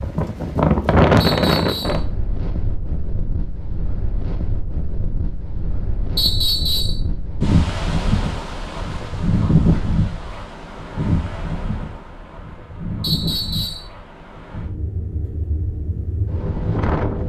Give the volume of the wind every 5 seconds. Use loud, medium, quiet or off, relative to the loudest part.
loud, loud, medium, medium.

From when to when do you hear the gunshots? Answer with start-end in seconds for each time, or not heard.
not heard.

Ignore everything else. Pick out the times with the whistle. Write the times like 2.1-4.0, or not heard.
1.2-2.0, 6.2-7.0, 13.0-13.8.